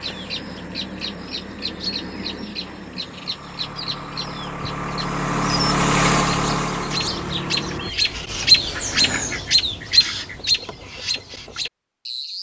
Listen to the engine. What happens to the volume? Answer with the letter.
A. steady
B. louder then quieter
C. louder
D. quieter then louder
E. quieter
C.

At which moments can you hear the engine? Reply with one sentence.
The engine can be heard from 0.0 to 7.9 s.